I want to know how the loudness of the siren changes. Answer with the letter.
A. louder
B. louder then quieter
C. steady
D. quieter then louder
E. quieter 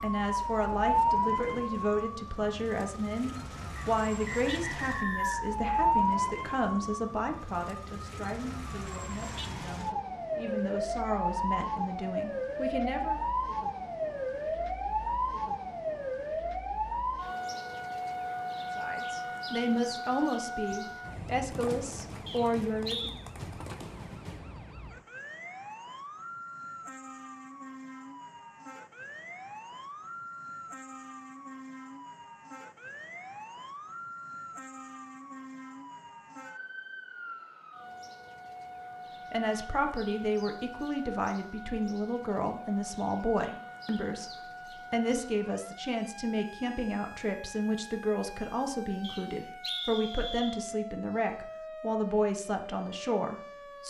E.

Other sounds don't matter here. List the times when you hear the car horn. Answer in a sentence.
You can't hear the car horn here.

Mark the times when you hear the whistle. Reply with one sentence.
The whistle can be heard from 3.8 to 5.5 s, from 22.2 to 23.1 s and from 49.0 to 50.6 s.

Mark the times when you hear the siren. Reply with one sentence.
You can hear the siren from 0.0 to 53.8 s.